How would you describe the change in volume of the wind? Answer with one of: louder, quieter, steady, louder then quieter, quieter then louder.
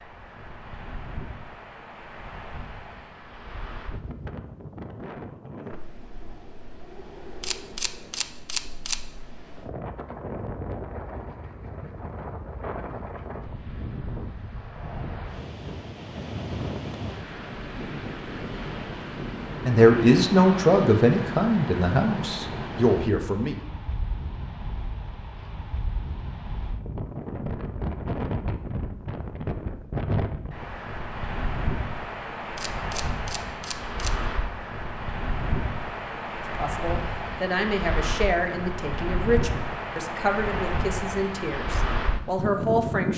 louder.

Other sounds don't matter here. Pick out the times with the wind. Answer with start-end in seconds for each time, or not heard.
0.0-43.1.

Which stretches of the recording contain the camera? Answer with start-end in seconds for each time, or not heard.
7.4-9.0, 32.5-34.1.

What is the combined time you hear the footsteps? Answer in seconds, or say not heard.
not heard.